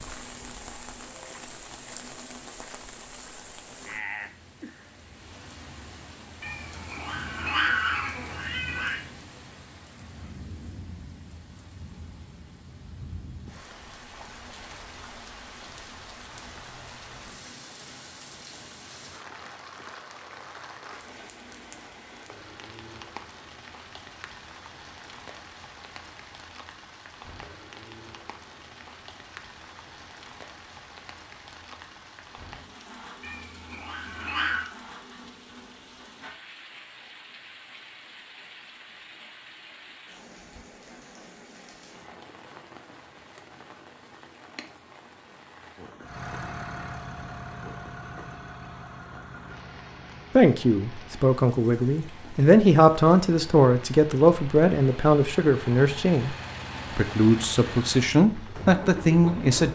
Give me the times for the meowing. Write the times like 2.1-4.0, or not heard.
6.4-9.0, 33.2-34.7.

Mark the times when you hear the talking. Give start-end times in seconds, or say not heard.
50.4-56.4, 57.0-59.7.